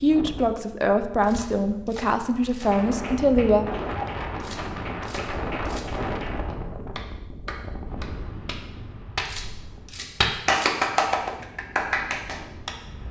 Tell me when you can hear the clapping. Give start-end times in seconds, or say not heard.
1.3-12.8.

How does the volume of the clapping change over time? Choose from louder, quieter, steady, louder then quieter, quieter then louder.
louder.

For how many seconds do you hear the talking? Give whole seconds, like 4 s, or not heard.
4 s.